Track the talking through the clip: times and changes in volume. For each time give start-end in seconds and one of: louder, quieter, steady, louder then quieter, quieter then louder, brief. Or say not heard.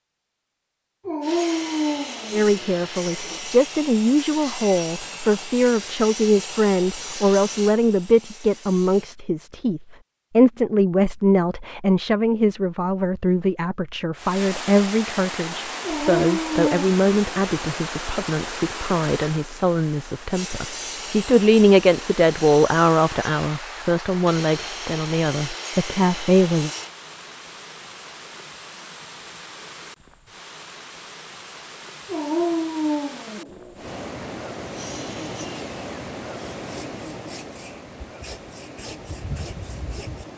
2.3-26.7 steady.